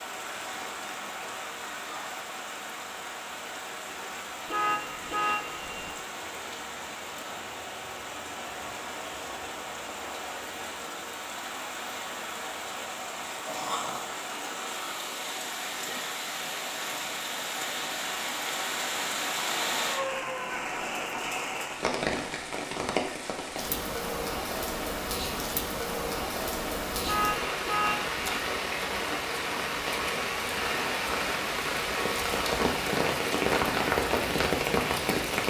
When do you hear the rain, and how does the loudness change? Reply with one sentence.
The rain can be heard from 0.0 to 35.4 s, getting louder.